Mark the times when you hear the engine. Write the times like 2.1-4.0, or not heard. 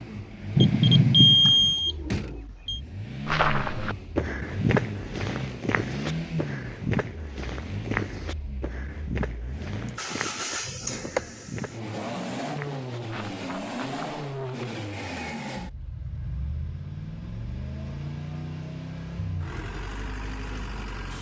0.0-21.1.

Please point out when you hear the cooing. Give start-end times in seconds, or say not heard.
not heard.